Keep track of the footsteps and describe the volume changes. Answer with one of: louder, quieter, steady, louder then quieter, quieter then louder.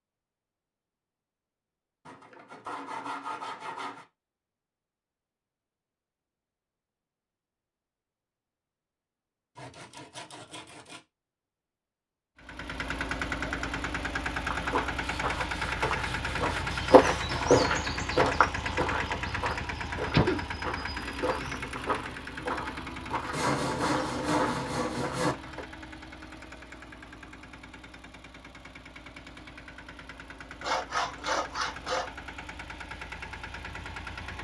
louder then quieter.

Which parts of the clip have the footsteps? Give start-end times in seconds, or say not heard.
14.4-25.6.